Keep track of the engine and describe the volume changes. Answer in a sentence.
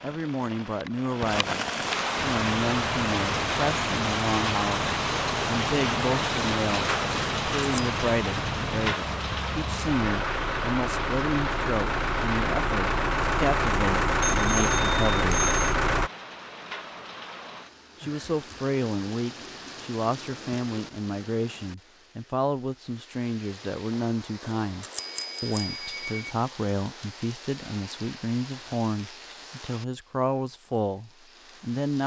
The volume of the engine goes up.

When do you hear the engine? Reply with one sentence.
You can hear the engine from 2.2 to 16.1 s.